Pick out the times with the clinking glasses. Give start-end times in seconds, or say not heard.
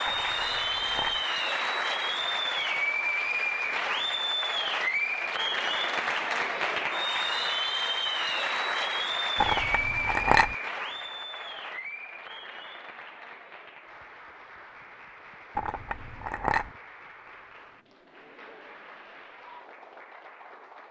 0.1-1.2, 9.3-10.6, 15.6-16.7.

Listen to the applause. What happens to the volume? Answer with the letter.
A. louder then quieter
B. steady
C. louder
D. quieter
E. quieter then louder
D.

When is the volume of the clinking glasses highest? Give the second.
10 s.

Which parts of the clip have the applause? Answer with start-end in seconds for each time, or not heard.
0.0-20.8.